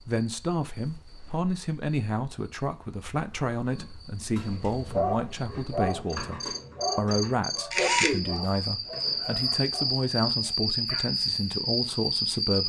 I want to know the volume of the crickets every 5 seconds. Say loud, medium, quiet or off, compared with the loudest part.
quiet, loud, loud.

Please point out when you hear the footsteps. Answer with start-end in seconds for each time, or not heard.
not heard.